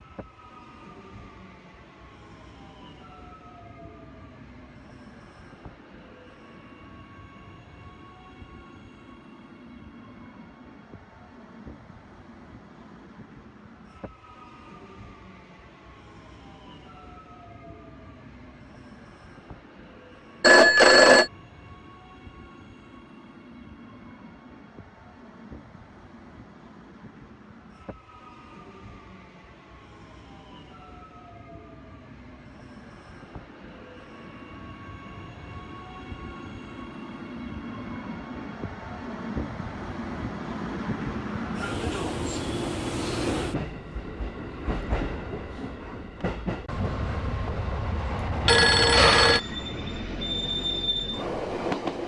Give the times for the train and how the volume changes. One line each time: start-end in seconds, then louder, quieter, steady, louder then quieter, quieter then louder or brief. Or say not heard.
0.0-52.0 louder.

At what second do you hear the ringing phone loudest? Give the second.
21 s.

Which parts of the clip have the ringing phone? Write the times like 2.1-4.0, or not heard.
20.4-21.3, 48.5-49.4.